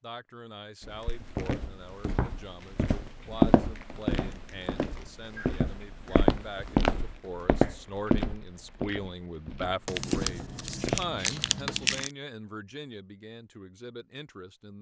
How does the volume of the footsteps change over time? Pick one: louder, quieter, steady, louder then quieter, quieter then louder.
louder then quieter.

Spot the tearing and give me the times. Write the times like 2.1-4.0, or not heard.
9.8-12.1.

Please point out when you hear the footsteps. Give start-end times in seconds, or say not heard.
0.8-11.1.